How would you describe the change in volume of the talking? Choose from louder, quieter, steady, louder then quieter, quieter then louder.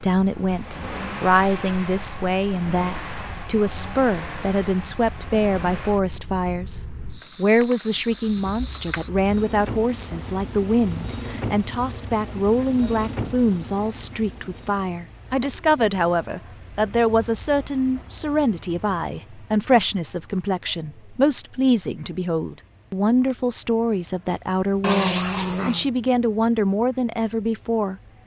steady.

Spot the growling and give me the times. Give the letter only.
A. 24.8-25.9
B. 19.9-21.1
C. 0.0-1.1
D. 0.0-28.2
A.